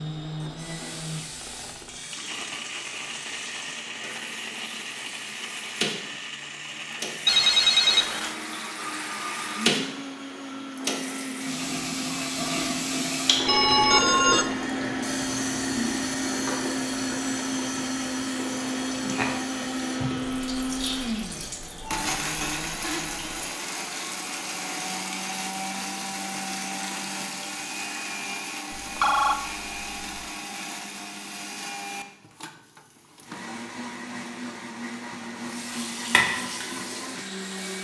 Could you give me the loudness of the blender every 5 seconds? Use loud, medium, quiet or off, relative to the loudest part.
medium, medium, loud, loud, loud, loud, medium, medium.